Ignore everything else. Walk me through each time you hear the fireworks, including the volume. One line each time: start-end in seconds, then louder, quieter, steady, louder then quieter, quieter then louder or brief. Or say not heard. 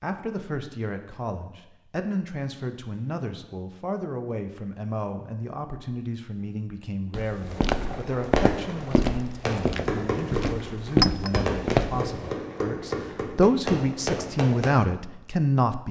7.5-14.7 steady.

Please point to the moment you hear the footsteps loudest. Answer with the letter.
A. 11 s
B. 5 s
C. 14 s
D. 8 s
A.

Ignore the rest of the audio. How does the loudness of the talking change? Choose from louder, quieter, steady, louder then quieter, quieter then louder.
louder.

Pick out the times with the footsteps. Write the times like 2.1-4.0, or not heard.
7.1-12.1.